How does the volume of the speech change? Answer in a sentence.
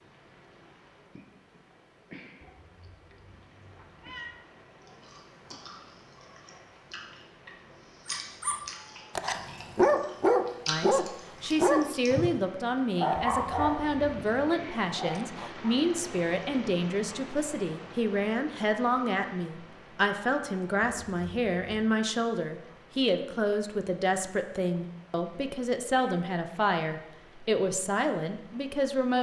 The loudness of the speech stays about the same.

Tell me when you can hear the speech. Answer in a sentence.
The speech can be heard from 10.7 to 29.1 s.